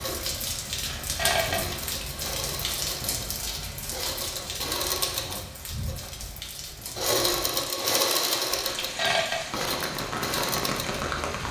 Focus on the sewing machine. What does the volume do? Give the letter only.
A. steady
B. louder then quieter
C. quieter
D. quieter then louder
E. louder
B.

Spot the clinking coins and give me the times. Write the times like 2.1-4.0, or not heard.
0.8-2.0, 8.6-9.4.